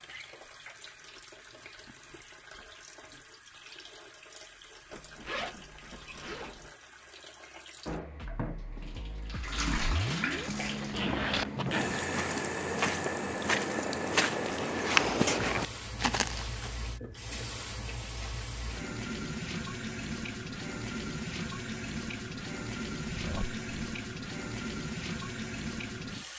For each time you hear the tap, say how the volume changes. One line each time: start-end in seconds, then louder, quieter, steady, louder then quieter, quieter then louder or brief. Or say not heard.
0.0-26.3 louder.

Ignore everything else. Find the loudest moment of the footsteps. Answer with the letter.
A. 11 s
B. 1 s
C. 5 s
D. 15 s
D.